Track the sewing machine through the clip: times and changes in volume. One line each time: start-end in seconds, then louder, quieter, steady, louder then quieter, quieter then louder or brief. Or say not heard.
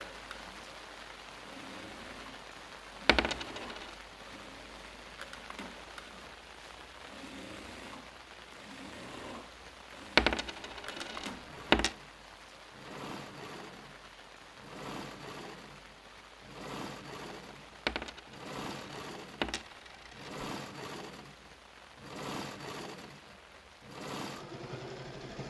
0.0-25.4 louder.